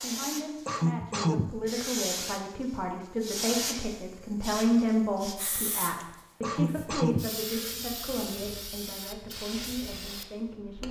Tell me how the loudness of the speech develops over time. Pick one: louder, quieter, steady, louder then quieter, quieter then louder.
louder then quieter.